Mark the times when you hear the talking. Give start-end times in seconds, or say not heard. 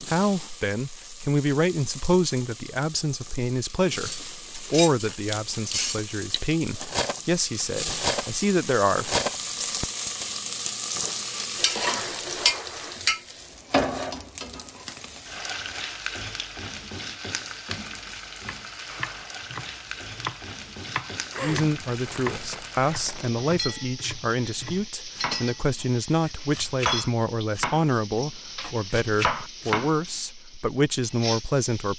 0.0-9.2, 21.4-31.9.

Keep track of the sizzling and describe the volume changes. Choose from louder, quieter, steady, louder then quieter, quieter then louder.
louder then quieter.